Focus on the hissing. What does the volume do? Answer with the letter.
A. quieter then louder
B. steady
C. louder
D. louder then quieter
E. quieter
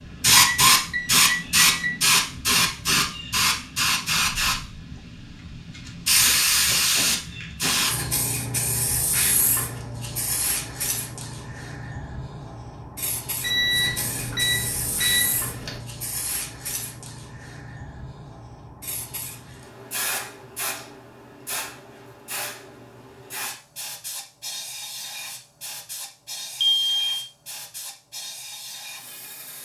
E.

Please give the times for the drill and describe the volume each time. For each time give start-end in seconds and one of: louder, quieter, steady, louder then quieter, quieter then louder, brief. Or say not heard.
not heard.